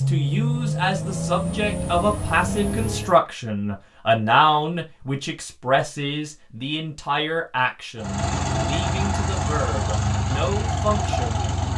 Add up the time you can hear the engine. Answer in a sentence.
You can hear the engine for 7 seconds altogether.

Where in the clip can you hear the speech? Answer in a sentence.
The speech can be heard from 0.0 to 11.5 s.